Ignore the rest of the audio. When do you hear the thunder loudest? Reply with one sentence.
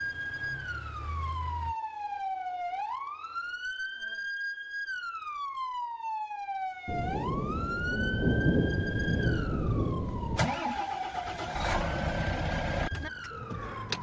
The volume of the thunder peaks at 8 seconds.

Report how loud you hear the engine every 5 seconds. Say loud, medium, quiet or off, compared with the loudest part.
quiet, off, loud.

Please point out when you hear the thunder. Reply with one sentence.
You can hear the thunder from 6.8 to 10.4 s.